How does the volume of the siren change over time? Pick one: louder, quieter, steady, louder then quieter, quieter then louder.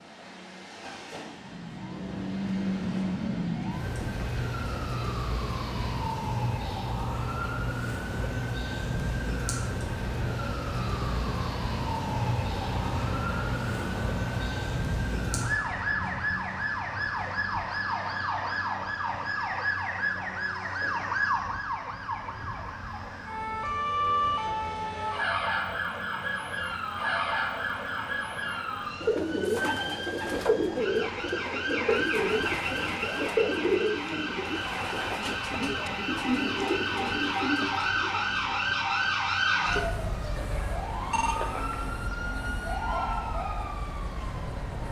steady.